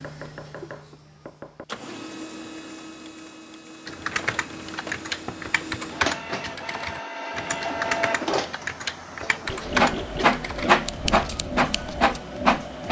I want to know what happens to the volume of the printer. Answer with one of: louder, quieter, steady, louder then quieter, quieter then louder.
louder.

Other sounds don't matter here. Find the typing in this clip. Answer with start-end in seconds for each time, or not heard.
3.9-12.2.